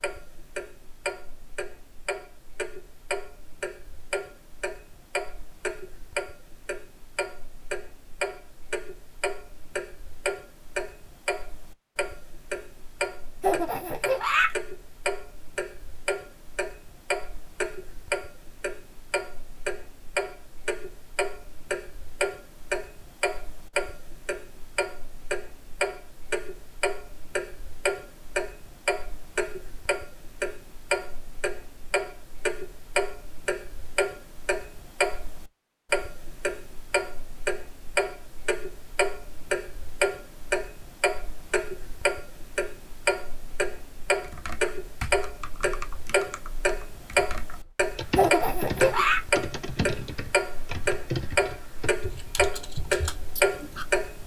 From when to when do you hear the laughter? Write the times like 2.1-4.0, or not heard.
13.4-14.6, 48.1-49.2.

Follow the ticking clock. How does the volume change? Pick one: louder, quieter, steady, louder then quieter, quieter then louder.
louder.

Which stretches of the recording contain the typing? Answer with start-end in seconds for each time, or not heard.
44.2-53.9.